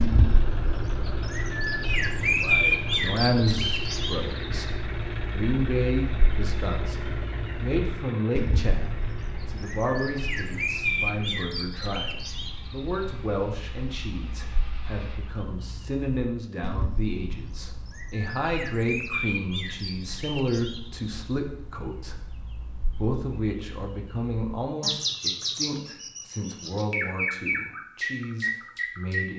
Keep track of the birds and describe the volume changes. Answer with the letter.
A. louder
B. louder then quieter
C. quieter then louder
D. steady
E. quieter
C.